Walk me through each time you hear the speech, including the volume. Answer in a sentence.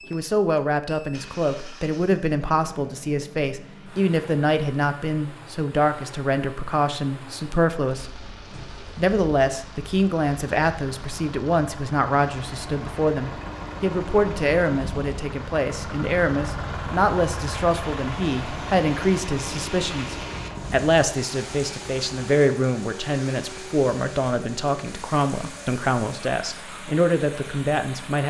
You can hear the speech from 0.1 to 28.2 s, at a steady volume.